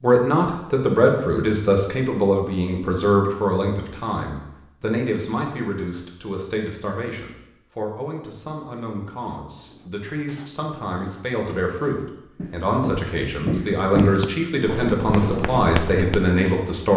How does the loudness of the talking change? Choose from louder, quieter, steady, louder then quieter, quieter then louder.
quieter then louder.